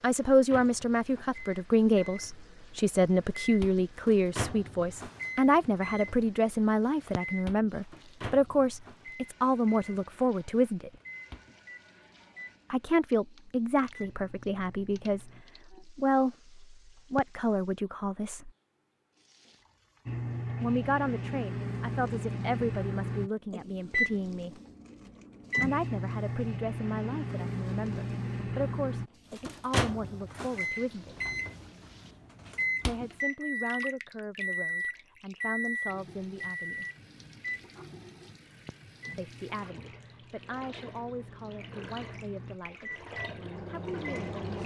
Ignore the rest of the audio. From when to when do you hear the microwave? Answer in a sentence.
The microwave can be heard from 0.3 to 15.4 s and from 20.1 to 44.6 s.